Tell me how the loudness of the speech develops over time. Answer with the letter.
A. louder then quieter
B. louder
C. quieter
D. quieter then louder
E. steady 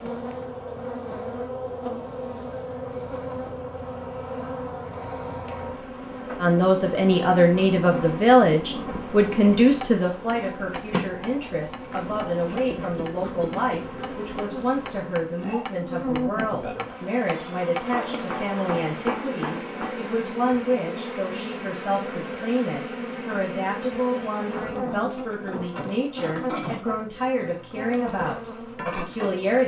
C.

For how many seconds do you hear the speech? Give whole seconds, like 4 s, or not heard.
23 s.